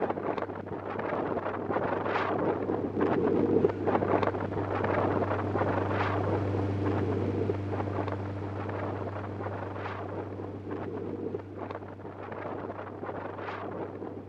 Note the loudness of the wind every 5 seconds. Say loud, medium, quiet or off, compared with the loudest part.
loud, loud, medium.